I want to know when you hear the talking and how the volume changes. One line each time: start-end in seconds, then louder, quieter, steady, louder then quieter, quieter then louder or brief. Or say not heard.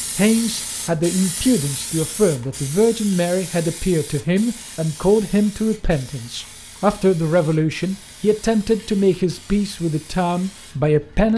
0.1-11.3 steady.